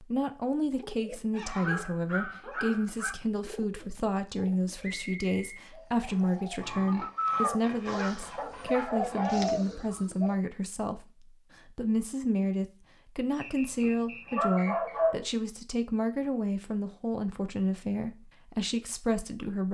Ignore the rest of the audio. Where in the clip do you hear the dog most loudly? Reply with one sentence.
The loudest moment of the dog is at 15 seconds.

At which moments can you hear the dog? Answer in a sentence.
The dog can be heard from 1.3 to 3.1 s, from 6.6 to 9.4 s and from 13.2 to 15.2 s.